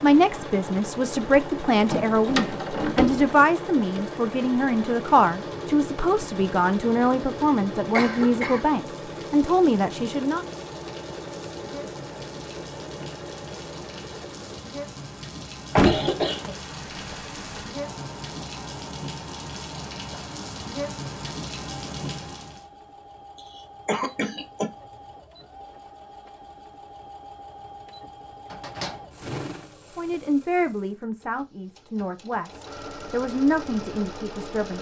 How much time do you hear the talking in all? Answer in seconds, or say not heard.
15 s.